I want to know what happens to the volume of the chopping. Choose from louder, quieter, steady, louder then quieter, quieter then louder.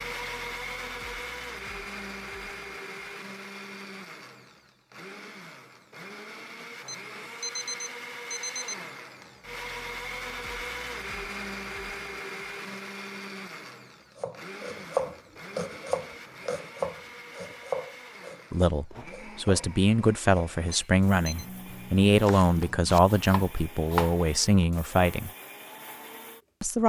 quieter then louder.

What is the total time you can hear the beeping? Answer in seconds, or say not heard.
3 s.